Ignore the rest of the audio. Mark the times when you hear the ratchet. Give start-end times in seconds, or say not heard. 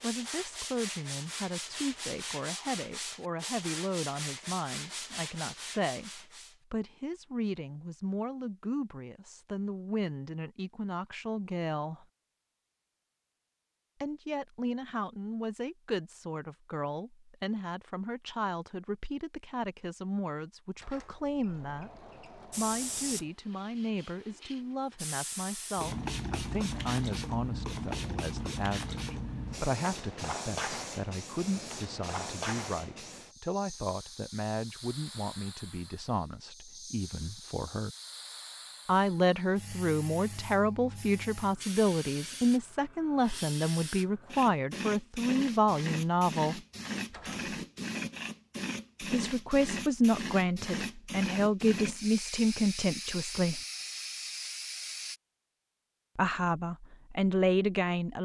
not heard.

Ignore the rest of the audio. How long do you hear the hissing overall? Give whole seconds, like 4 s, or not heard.
33 s.